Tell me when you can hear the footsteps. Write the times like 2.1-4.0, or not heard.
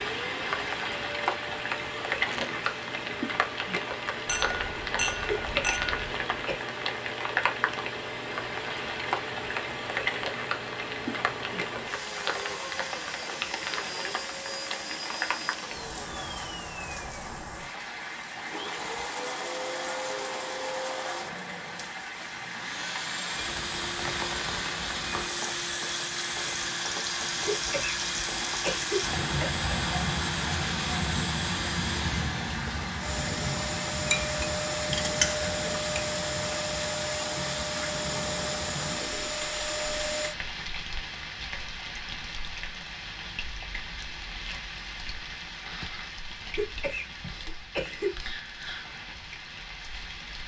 not heard.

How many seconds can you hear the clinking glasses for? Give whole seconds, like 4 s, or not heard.
4 s.